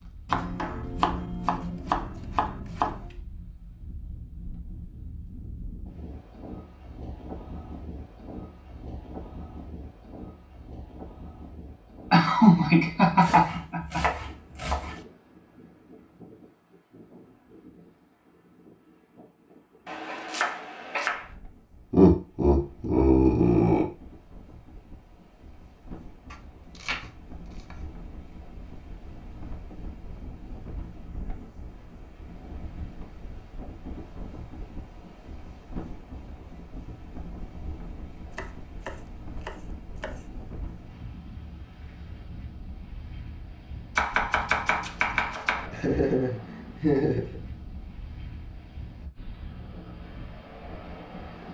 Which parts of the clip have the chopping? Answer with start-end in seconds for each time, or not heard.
0.2-3.1, 13.2-15.0, 19.9-21.2, 26.3-27.8, 38.2-40.3, 44.0-45.7.